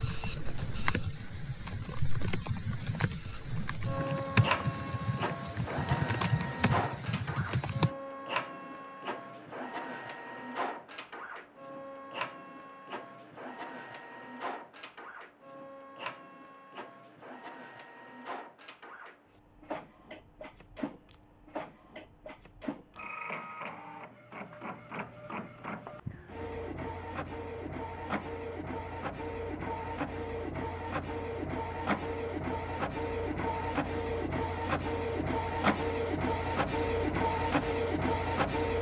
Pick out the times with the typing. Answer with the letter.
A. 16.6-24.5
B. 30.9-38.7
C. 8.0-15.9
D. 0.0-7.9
D.